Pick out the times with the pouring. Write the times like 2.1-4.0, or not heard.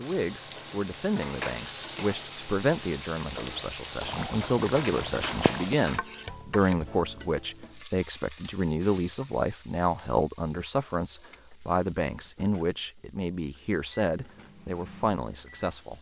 3.3-5.8.